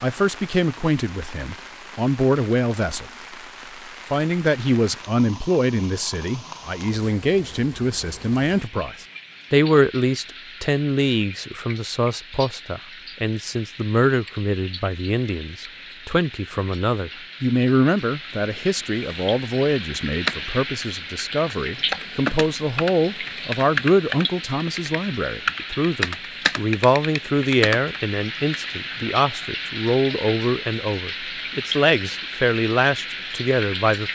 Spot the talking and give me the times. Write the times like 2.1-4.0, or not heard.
0.0-3.1, 4.1-34.1.